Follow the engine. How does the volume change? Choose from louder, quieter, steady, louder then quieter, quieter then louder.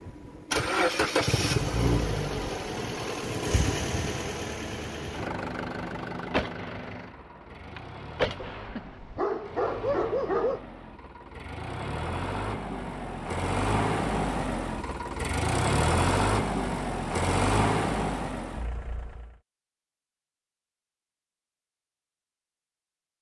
quieter then louder.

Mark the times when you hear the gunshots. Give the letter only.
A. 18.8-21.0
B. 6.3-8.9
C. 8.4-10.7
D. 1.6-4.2
B.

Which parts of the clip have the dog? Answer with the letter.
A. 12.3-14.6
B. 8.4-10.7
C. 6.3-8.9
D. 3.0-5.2
B.